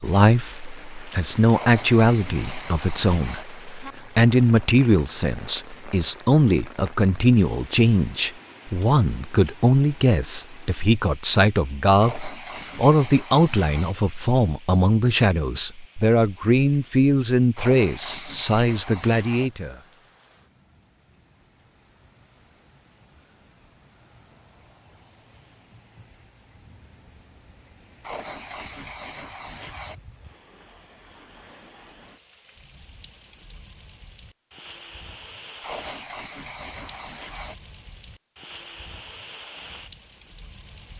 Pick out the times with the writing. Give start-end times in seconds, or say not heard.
1.5-3.5, 12.0-13.9, 17.6-19.5, 28.0-29.9, 35.6-37.5.